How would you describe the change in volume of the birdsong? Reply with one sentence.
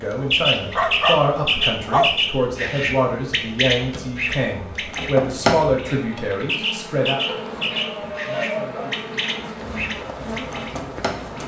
The loudness of the birdsong goes down.